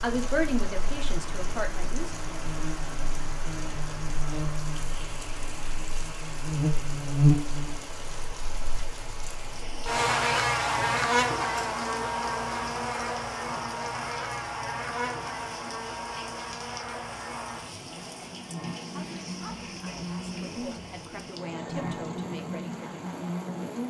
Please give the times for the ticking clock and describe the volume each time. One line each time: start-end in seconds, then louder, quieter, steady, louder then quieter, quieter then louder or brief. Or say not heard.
not heard.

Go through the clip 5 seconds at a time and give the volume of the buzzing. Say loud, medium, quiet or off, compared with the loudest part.
medium, loud, loud, medium, medium.